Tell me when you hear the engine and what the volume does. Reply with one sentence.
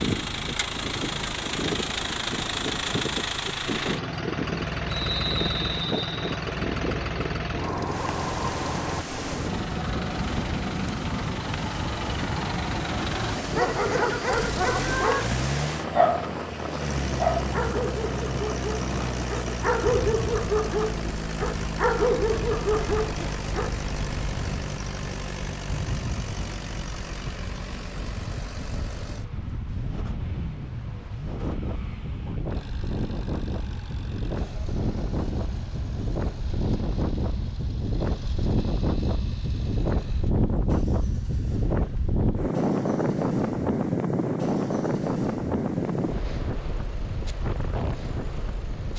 The engine can be heard from 0.0 to 48.9 s, getting quieter.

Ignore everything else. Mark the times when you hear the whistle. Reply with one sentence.
You can hear the whistle from 4.8 to 6.4 s.